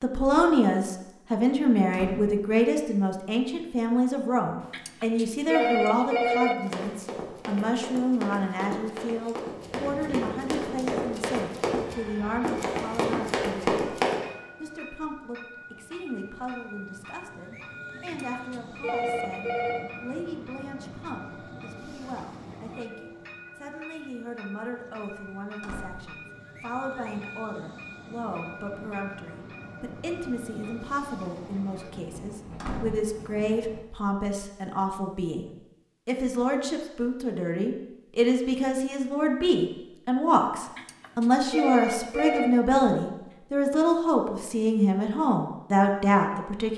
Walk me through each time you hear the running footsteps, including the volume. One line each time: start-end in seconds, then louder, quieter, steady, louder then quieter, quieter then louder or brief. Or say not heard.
6.5-14.2 louder.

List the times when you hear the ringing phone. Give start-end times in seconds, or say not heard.
4.6-6.5, 17.9-19.9, 40.6-42.5.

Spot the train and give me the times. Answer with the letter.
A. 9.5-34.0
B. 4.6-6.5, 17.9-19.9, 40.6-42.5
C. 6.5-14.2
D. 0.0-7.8
A.